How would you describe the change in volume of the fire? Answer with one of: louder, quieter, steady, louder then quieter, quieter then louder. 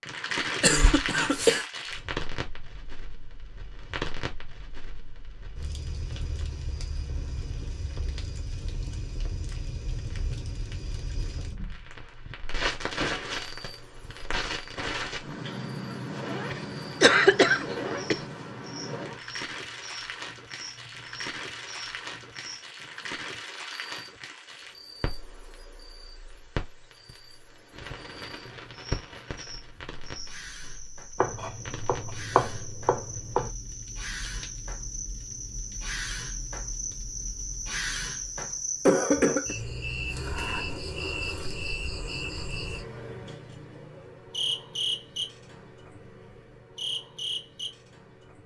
quieter.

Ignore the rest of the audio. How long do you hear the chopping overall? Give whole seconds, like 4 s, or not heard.
2 s.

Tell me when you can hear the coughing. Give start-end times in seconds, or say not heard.
0.6-1.6, 16.5-18.2, 38.9-39.5.